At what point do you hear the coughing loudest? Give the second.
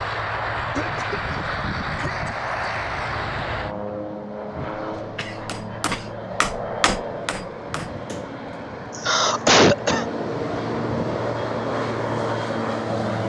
10 s.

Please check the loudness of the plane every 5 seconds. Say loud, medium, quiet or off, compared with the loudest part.
loud, medium, loud.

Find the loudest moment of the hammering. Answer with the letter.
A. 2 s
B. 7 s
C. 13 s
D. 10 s
B.